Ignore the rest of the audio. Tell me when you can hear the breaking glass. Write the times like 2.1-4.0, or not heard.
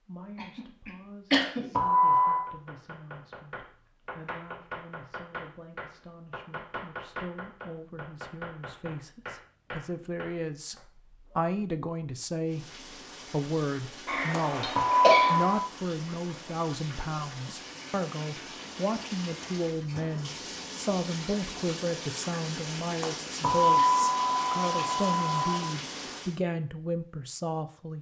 not heard.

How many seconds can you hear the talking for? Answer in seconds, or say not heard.
28 s.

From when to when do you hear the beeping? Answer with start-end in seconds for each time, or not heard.
1.3-2.5, 14.3-15.6, 23.0-25.6.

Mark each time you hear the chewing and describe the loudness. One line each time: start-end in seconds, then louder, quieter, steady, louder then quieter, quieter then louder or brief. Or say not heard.
not heard.